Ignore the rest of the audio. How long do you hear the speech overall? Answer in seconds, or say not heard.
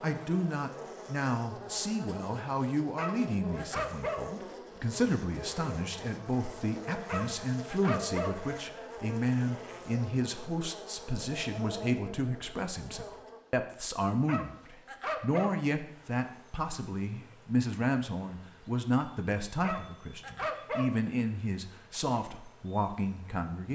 24 s.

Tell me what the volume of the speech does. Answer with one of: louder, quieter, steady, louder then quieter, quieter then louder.
steady.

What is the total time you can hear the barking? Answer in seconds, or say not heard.
6 s.